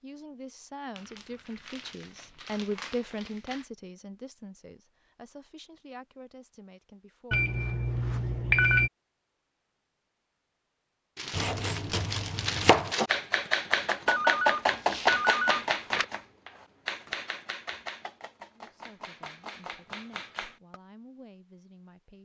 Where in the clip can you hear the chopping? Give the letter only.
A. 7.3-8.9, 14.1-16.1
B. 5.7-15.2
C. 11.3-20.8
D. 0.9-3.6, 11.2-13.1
C.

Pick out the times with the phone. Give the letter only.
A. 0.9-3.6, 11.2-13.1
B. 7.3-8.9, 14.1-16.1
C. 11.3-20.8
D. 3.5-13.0
B.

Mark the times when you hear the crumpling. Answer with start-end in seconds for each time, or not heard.
0.9-3.6, 11.2-13.1.